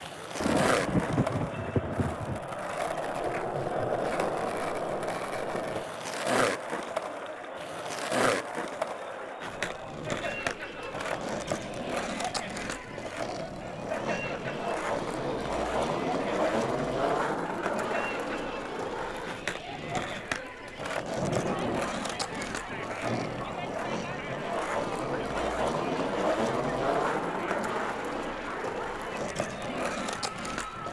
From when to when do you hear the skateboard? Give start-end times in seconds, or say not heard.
0.0-30.8.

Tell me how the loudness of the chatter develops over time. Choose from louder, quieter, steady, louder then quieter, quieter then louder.
steady.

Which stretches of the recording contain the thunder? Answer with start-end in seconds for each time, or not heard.
0.4-2.4, 21.1-23.6.